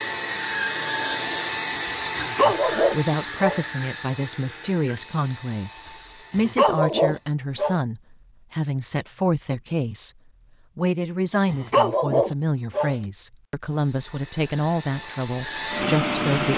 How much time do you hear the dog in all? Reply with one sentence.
The dog can be heard for 4 seconds in total.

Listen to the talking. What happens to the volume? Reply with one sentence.
The volume of the talking stays about the same.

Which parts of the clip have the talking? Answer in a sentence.
You can hear the talking from 2.4 to 5.7 s, from 6.3 to 10.2 s and from 10.8 to 16.5 s.